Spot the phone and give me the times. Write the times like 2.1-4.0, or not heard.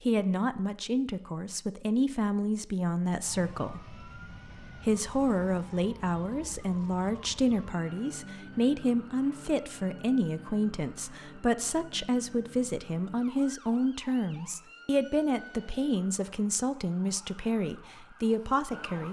not heard.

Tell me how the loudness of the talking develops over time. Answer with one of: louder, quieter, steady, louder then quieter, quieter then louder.
steady.